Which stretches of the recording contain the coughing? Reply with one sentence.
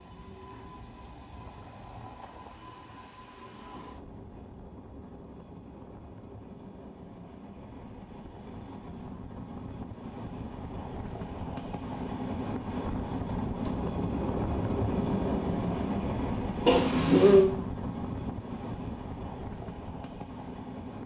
The coughing can be heard from 16.6 to 17.5 s.